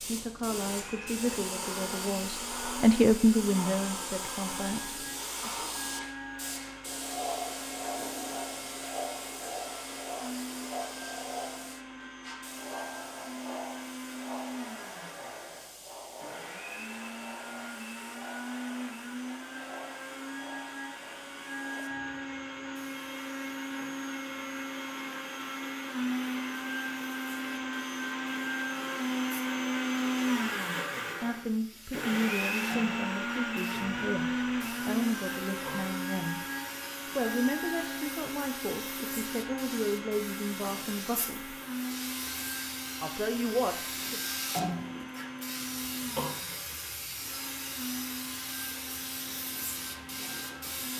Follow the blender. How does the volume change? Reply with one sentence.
The volume of the blender goes up, then down.